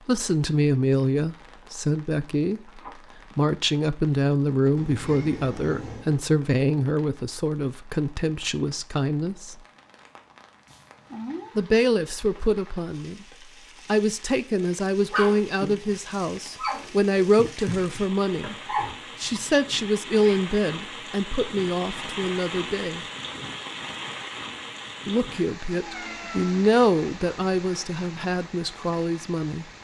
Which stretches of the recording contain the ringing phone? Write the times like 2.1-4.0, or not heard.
2.6-3.4.